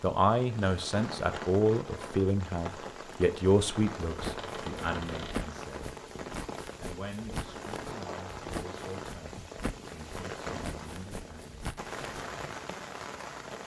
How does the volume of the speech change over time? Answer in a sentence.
The loudness of the speech goes down.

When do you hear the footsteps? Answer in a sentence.
You can hear the footsteps from 4.0 to 12.9 s.